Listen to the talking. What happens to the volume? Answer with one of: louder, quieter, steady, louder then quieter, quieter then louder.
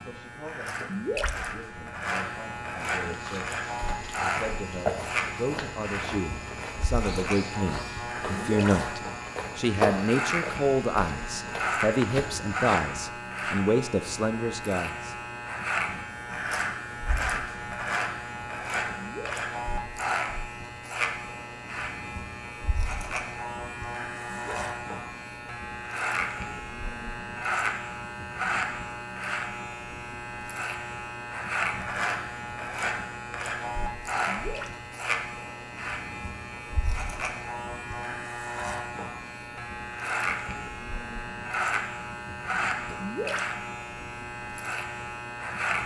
louder.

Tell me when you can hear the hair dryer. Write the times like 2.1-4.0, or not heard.
not heard.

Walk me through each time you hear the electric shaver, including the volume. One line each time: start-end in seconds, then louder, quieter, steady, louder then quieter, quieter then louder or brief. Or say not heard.
0.0-45.8 steady.